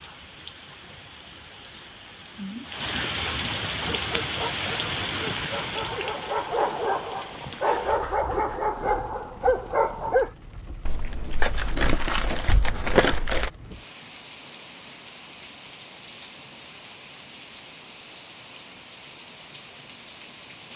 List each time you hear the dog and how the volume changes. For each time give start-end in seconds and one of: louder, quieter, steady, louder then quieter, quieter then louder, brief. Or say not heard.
3.8-10.3 louder.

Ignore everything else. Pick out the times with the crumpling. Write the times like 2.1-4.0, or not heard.
10.8-13.5.